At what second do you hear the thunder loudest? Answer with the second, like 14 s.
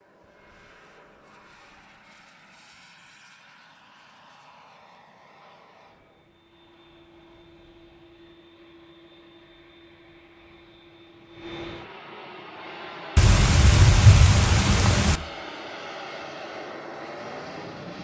14 s.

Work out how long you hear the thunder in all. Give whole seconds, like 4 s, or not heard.
2 s.